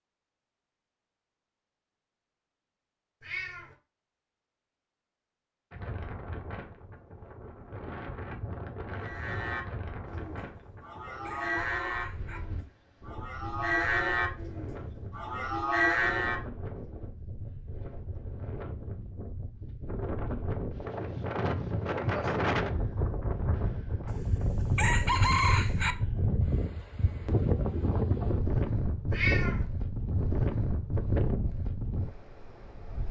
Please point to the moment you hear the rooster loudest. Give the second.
25 s.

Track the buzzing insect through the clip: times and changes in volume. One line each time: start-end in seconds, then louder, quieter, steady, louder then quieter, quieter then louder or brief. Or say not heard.
not heard.